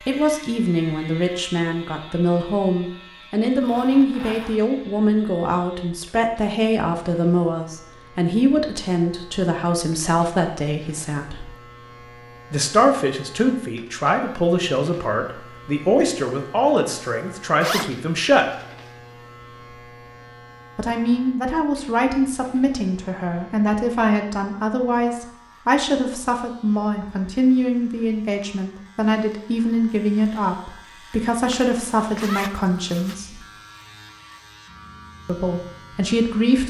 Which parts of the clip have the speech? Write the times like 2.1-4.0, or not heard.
0.1-11.6, 12.5-18.4, 20.8-33.4, 35.2-36.6.